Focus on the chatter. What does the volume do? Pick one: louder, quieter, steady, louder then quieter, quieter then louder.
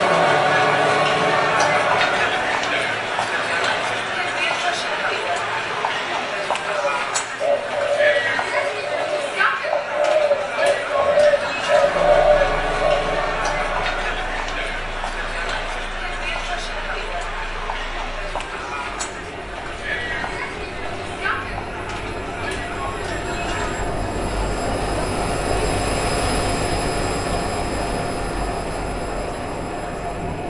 quieter.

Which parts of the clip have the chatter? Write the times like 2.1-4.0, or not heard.
0.0-30.4.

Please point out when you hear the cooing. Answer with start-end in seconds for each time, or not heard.
6.6-13.2.